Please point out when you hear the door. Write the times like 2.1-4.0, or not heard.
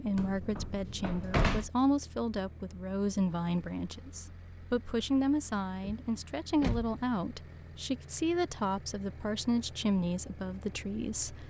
0.1-1.7, 5.8-7.0.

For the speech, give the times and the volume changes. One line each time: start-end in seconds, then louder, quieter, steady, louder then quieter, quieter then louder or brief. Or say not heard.
0.0-11.4 steady.